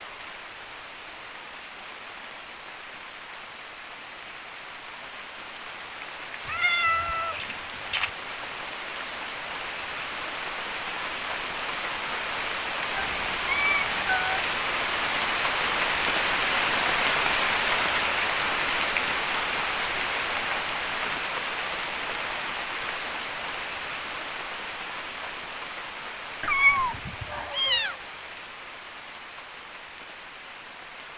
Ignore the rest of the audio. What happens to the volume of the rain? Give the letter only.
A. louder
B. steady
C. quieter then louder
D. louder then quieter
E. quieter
D.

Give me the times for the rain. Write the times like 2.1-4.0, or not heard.
0.0-31.1.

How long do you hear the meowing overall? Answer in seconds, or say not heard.
5 s.